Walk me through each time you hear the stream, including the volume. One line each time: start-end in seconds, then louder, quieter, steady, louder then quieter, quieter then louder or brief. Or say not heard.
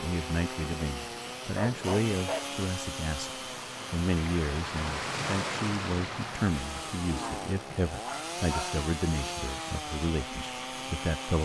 0.0-11.4 louder then quieter.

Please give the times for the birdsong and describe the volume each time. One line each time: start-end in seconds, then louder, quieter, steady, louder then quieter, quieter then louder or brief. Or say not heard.
not heard.